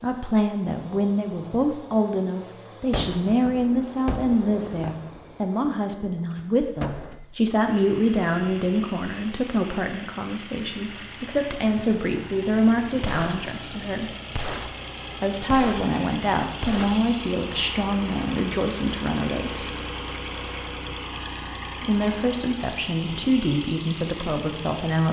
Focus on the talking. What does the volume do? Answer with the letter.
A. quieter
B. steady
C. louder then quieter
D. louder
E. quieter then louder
B.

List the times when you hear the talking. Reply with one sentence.
You can hear the talking from 0.0 to 14.1 s, from 15.2 to 19.8 s and from 21.8 to 25.0 s.